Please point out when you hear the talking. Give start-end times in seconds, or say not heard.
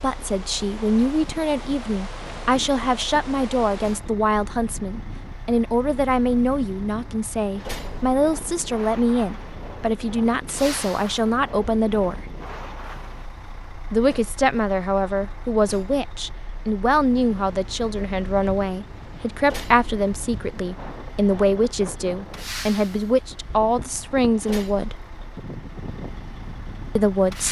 0.0-12.2, 13.9-24.9, 26.9-27.4.